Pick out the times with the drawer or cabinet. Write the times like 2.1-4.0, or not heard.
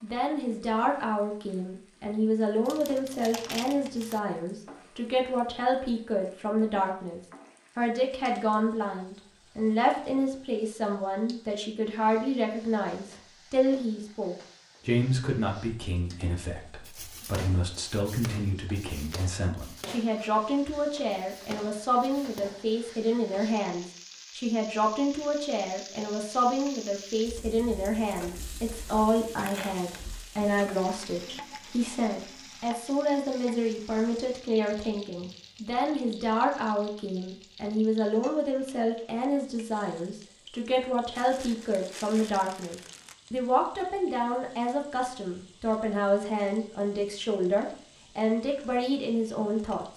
not heard.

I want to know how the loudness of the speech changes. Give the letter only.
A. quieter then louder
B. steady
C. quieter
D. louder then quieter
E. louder
B.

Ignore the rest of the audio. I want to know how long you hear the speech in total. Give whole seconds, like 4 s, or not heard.
50 s.